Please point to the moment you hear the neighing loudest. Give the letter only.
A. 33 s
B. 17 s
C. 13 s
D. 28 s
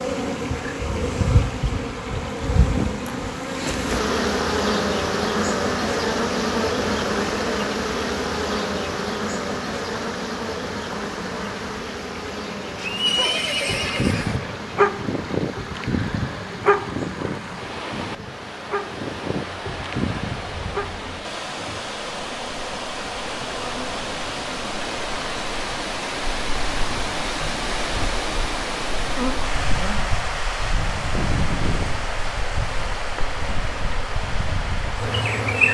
C.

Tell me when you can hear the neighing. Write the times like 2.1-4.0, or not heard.
12.8-14.4.